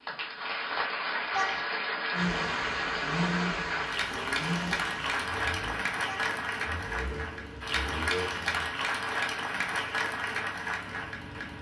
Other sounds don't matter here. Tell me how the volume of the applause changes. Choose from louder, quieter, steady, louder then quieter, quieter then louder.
steady.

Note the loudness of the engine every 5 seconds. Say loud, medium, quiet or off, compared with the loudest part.
loud, medium, off.